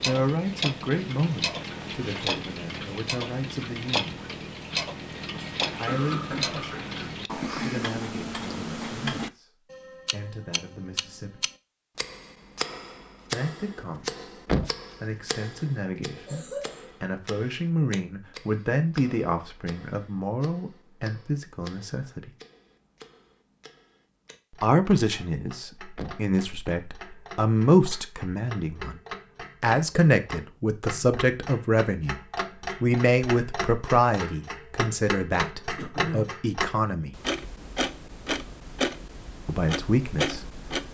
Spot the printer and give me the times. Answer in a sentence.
The printer can't be heard in this clip.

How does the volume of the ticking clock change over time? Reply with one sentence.
The volume of the ticking clock goes down, then up.